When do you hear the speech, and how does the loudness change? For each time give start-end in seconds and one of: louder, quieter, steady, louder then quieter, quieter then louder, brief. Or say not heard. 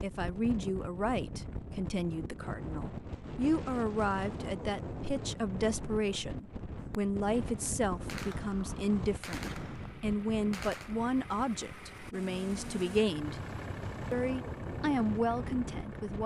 0.0-13.3 steady
14.1-16.2 brief.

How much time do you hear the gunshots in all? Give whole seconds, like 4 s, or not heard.
3 s.